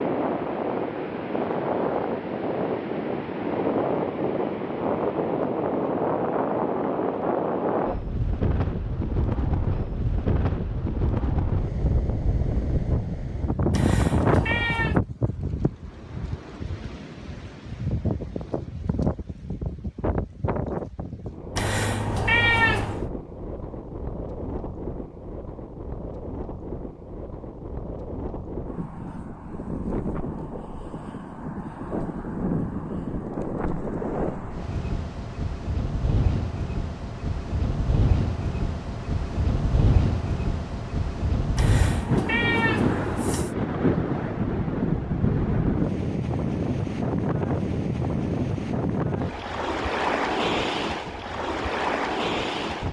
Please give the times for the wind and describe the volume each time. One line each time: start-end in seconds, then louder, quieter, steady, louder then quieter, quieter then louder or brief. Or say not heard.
0.0-52.8 quieter then louder.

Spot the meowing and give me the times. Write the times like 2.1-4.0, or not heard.
13.7-15.0, 21.6-23.1, 41.5-43.5.